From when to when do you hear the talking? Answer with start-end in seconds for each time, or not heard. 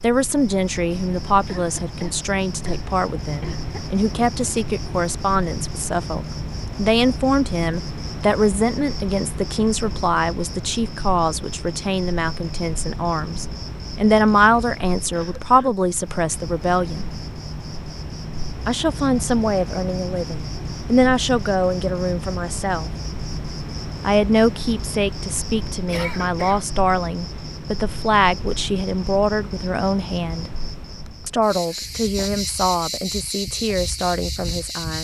0.0-17.1, 18.6-22.9, 24.0-30.5, 31.2-34.9.